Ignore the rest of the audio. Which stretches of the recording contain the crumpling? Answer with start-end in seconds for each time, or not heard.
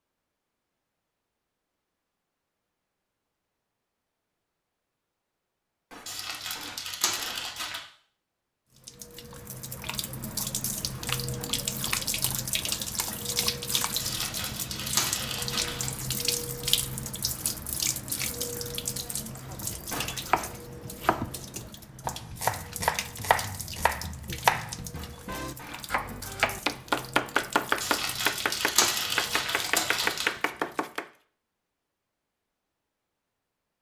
6.0-7.8, 13.9-15.8, 27.8-30.3.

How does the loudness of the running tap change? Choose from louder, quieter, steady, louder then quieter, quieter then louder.
quieter.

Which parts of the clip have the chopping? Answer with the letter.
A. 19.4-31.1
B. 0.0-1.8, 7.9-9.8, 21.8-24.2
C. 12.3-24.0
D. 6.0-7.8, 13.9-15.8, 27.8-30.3
A.